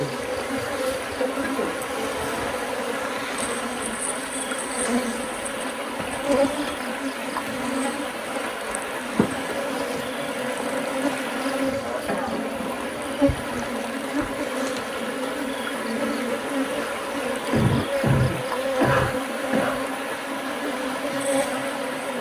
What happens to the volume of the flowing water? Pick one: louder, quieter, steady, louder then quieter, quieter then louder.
steady.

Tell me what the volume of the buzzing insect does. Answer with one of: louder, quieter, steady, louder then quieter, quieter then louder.
steady.